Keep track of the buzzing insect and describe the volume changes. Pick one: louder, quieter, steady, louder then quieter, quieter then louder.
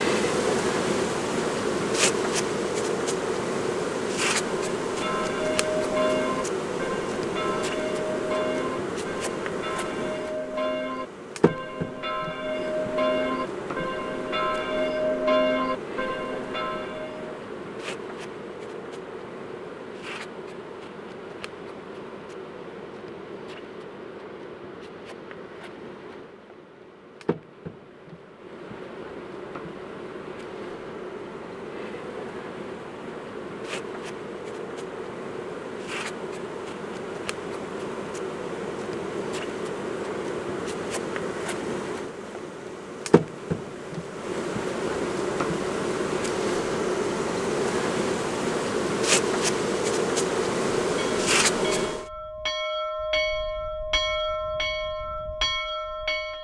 quieter then louder.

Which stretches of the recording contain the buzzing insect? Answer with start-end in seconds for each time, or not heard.
0.0-52.0.